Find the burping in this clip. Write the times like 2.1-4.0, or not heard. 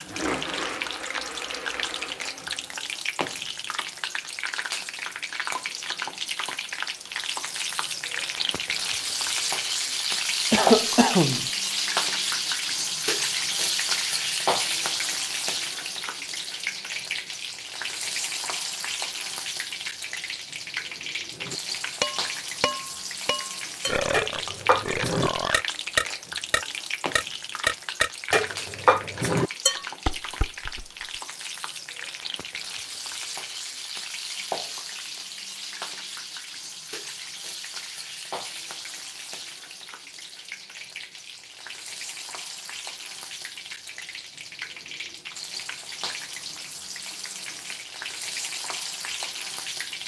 23.9-25.6.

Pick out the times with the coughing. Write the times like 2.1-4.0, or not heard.
10.5-11.5.